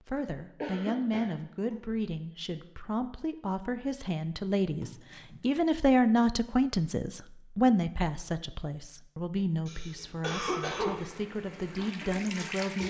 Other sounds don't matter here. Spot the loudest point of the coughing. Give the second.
11 s.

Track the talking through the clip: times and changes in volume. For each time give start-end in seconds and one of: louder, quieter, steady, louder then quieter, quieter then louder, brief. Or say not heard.
0.1-12.8 louder then quieter.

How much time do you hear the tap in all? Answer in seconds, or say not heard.
2 s.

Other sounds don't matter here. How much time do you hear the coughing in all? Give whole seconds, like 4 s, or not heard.
3 s.